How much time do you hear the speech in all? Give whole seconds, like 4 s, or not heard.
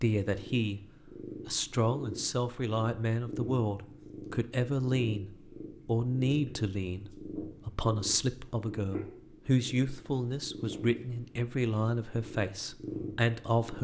13 s.